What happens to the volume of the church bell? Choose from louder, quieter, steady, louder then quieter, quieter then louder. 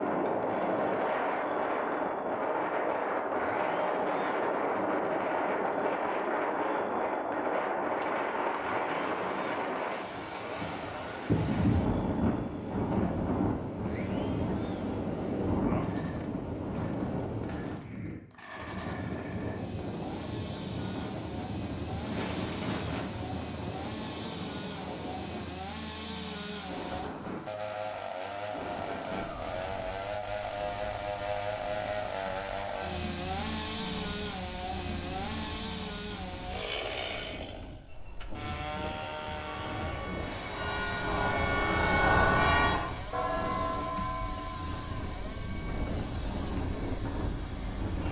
louder then quieter.